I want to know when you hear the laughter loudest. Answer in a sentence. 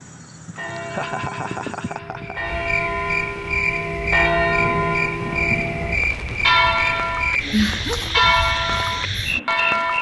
The loudest moment of the laughter is at 8 seconds.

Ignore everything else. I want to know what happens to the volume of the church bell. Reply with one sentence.
The volume of the church bell goes up.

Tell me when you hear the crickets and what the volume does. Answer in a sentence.
You can hear the crickets from 0.0 to 9.9 s, getting louder.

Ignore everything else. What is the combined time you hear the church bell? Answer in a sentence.
You can hear the church bell for 10 seconds altogether.